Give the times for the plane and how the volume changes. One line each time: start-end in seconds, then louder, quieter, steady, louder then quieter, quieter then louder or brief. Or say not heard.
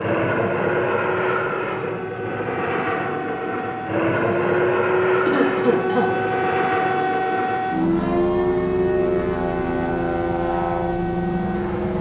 0.0-11.9 steady.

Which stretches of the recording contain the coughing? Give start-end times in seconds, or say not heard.
5.2-6.1.